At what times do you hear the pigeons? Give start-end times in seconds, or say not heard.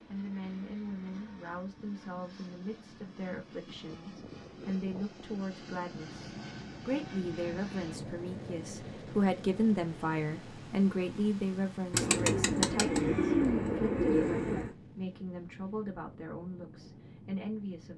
11.9-14.8.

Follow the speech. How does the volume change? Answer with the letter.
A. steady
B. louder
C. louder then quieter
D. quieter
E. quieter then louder
C.